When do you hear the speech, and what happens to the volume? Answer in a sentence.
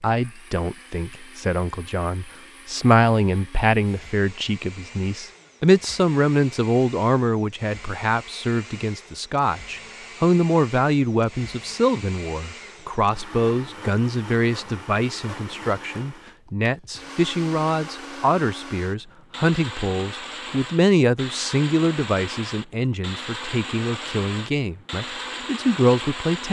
You can hear the speech from 0.0 to 26.4 s, at a steady volume.